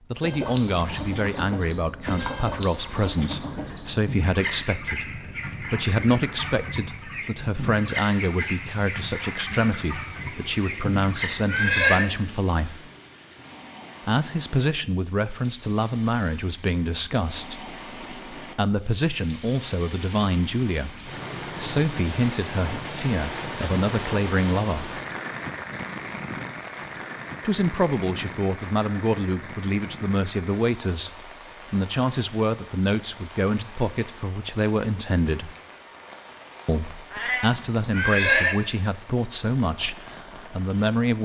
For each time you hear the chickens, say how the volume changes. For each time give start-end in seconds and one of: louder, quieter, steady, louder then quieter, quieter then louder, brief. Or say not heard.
0.2-11.3 steady.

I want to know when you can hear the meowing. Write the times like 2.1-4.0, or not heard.
37.1-37.5.